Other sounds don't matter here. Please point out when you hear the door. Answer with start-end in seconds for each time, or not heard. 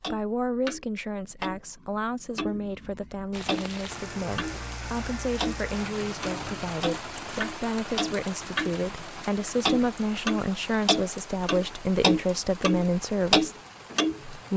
not heard.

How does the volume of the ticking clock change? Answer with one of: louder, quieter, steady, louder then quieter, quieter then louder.
louder.